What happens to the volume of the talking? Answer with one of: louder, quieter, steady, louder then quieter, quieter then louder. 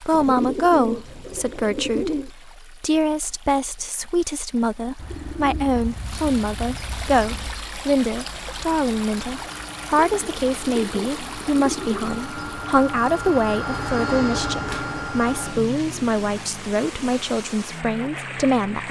steady.